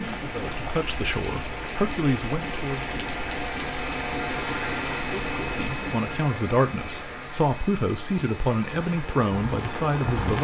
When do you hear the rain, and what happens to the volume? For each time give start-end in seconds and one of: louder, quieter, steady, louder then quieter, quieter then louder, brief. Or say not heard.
0.0-10.3 quieter then louder.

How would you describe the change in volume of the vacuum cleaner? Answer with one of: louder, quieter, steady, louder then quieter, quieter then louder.
louder then quieter.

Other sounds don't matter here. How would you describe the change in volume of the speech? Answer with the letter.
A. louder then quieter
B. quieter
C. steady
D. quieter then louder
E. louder
E.